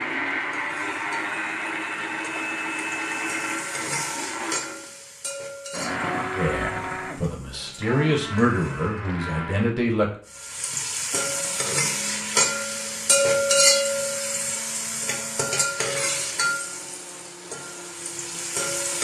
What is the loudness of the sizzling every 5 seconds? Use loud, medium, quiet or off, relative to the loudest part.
quiet, quiet, loud, medium.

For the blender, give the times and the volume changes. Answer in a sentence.
You can hear the blender from 0.0 to 18.9 s, getting quieter.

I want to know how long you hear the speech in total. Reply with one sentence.
You can hear the speech for 4 seconds altogether.